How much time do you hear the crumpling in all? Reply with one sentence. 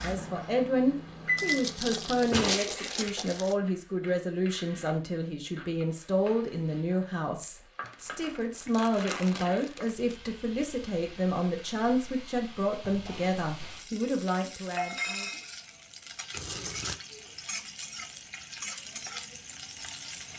You can hear the crumpling for 5 seconds altogether.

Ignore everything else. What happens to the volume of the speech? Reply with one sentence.
The volume of the speech stays about the same.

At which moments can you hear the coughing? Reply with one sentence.
The coughing can't be heard in this clip.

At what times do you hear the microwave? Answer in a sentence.
You can hear the microwave from 0.0 to 2.4 s.